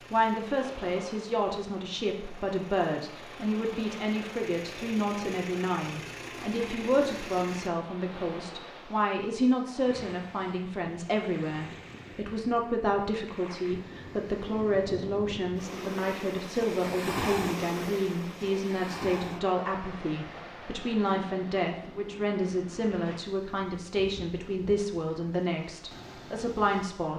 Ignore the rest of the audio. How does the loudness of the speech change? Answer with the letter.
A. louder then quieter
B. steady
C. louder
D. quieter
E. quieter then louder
B.